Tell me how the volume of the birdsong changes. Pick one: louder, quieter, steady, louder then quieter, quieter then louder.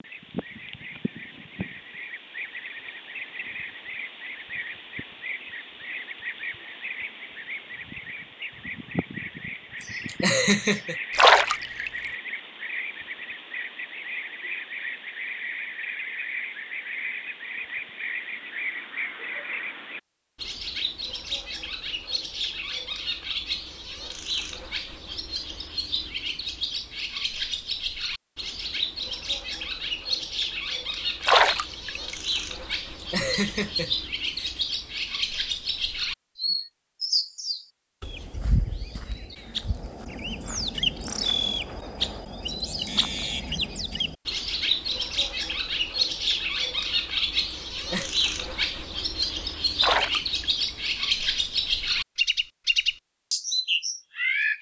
louder.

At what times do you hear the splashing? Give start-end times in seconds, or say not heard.
11.2-12.1, 31.2-32.1, 49.8-50.7.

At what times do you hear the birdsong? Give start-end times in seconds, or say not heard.
0.0-54.5.